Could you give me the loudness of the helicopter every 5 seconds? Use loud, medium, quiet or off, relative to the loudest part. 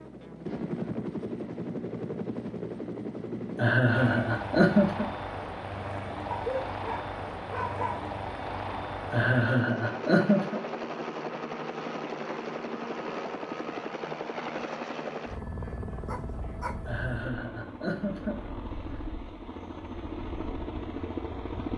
loud, loud, loud, medium, loud.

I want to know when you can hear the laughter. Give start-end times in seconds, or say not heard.
3.5-5.0, 9.1-10.6, 16.9-18.5.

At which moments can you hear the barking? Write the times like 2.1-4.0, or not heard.
6.3-8.1, 16.1-16.8.